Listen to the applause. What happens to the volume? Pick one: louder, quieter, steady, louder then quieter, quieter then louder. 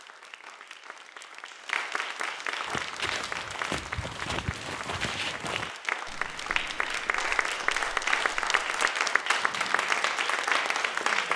louder.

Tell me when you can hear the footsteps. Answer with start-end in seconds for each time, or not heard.
2.6-8.9.